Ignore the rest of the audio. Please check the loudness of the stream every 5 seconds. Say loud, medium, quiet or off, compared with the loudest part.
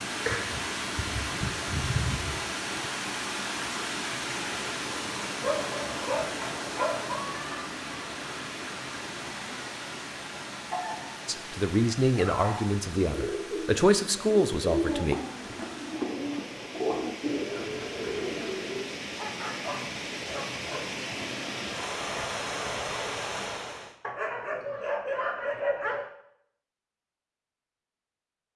loud, loud, medium, medium, loud, off.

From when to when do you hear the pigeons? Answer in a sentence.
The pigeons can be heard from 12.9 to 18.9 s.